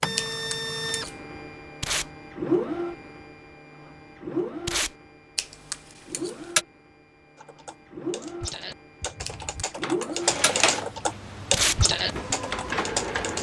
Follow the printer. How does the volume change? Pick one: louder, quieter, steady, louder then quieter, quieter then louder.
quieter then louder.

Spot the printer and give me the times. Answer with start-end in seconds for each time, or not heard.
0.0-13.3.